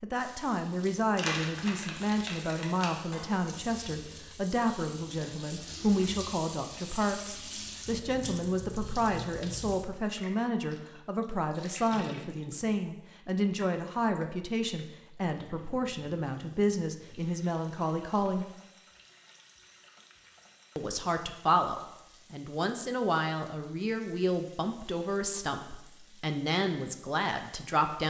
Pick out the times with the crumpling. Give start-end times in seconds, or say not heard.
1.1-3.0.